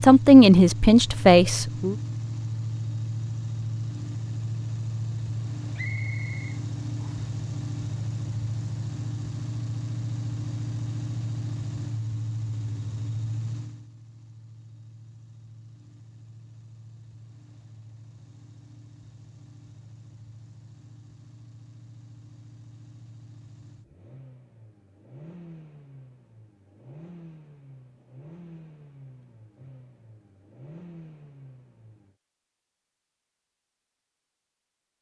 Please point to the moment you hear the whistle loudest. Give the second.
6 s.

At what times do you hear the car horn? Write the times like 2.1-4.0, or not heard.
not heard.